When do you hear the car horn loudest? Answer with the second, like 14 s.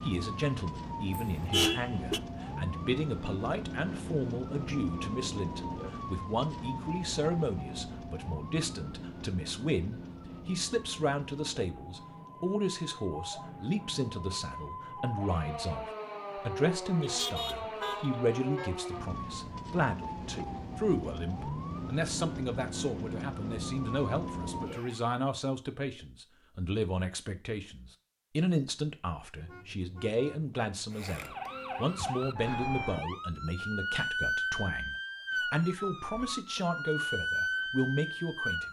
2 s.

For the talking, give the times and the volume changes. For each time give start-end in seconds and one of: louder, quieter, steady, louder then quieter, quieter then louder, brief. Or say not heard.
0.0-38.6 steady.